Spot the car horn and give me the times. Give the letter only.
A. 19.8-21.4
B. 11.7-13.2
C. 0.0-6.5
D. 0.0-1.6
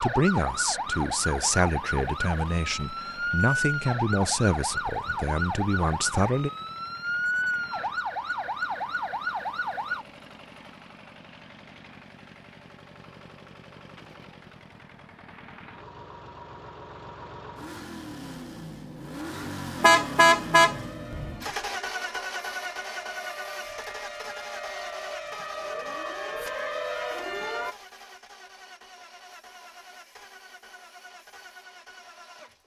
A.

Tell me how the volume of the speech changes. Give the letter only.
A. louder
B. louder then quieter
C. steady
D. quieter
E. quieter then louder
C.